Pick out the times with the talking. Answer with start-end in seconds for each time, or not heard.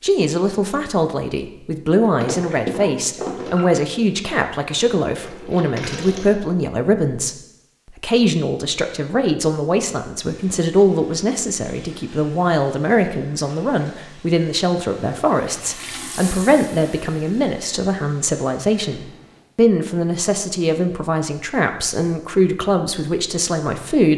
0.0-24.1.